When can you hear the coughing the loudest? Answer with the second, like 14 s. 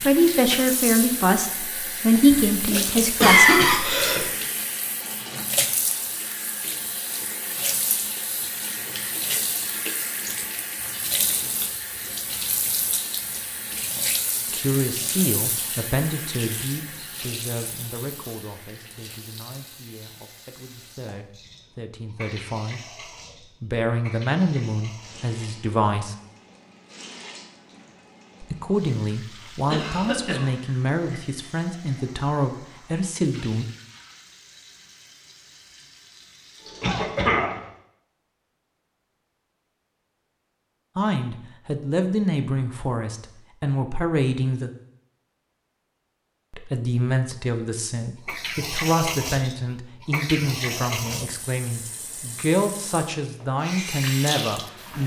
3 s.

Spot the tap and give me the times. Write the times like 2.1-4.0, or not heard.
0.0-37.8, 48.2-55.0.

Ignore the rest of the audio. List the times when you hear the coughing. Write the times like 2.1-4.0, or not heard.
2.3-4.3, 29.7-30.5, 36.8-37.5.